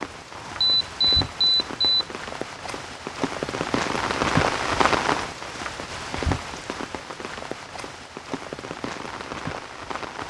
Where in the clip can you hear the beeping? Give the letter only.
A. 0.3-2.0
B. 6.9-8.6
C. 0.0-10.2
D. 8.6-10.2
A.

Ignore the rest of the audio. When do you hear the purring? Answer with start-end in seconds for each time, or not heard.
not heard.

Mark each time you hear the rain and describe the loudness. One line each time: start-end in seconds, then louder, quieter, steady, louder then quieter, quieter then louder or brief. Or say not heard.
0.0-10.2 louder then quieter.